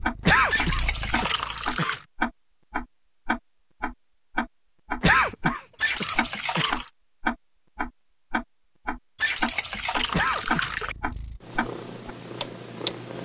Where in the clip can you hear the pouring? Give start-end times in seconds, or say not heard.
0.5-2.0, 5.8-6.9, 9.2-10.9.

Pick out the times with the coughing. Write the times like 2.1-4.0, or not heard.
0.2-1.9, 5.0-6.8, 10.1-10.7.